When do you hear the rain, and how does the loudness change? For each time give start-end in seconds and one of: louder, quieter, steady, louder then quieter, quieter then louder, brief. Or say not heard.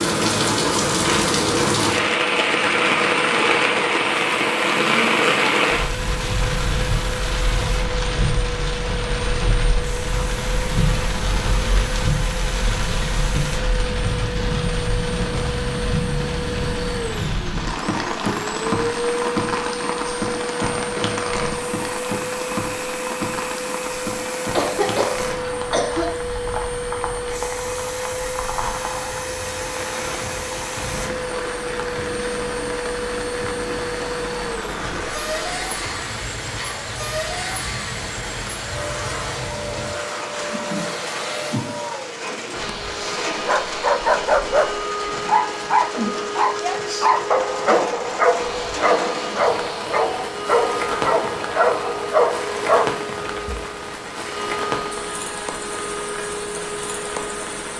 0.0-57.7 quieter.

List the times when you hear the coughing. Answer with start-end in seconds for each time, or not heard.
24.6-26.1.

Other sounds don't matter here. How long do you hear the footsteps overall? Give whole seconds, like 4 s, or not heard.
not heard.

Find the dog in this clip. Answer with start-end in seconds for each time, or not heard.
43.5-53.6.